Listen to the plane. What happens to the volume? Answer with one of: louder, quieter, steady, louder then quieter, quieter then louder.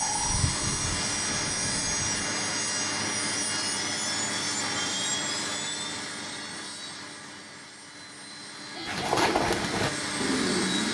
quieter then louder.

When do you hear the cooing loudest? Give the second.
9 s.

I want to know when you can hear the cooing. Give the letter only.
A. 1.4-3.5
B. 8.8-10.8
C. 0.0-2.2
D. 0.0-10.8
B.